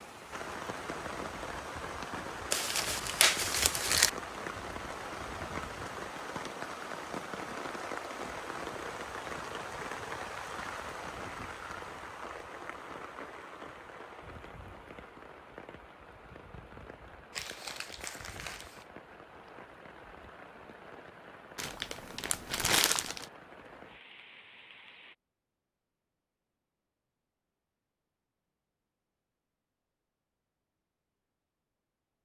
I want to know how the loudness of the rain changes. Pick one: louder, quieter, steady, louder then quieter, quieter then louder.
quieter.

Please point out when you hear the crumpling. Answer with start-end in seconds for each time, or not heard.
2.5-4.1, 17.3-18.9, 21.6-23.2.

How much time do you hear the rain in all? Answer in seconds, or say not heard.
25 s.